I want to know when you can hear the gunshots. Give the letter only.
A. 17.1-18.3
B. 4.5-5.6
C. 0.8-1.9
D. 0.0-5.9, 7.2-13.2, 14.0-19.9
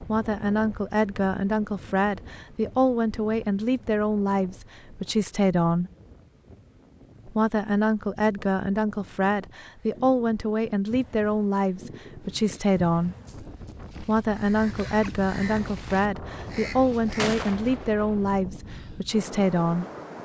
A.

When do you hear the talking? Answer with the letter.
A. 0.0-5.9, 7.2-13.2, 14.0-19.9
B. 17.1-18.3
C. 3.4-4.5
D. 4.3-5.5
A.